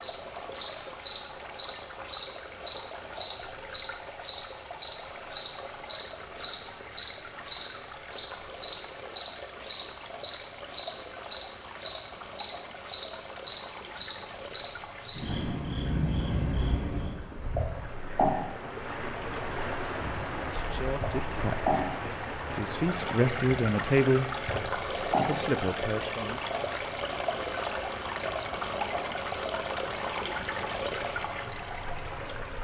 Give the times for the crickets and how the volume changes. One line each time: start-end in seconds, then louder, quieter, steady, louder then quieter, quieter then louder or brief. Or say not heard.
0.0-25.4 quieter.